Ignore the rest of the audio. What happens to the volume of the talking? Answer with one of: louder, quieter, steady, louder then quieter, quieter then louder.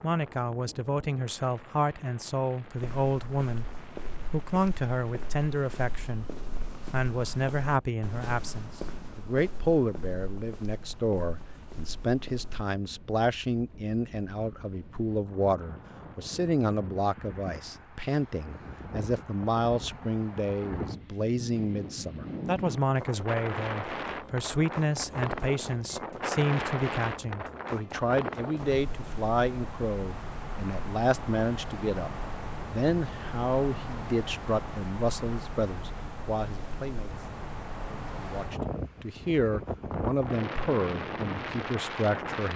steady.